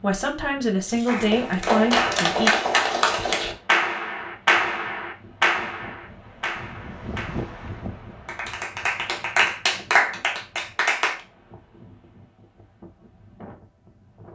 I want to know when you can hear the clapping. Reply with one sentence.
The clapping can be heard from 1.1 to 11.2 s.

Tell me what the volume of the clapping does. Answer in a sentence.
The loudness of the clapping goes down, then up.